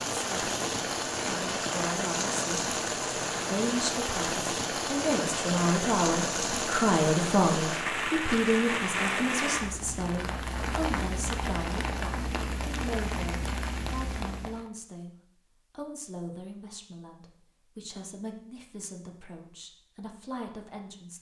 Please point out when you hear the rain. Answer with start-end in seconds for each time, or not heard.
0.0-14.7.